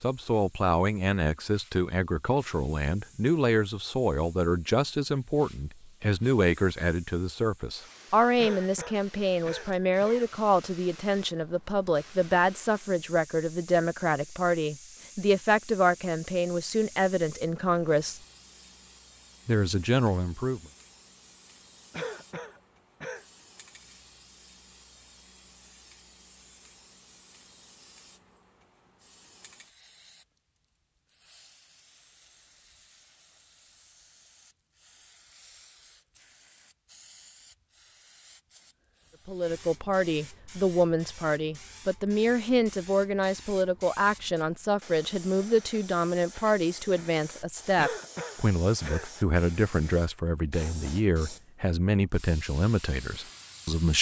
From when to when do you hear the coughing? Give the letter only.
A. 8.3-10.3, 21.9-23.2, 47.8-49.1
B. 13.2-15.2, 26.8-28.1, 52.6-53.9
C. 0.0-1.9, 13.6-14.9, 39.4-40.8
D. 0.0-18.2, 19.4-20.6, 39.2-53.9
A.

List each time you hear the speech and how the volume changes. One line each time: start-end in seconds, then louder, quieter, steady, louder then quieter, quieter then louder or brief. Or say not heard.
0.0-18.2 steady
19.4-20.6 brief
39.2-53.9 steady.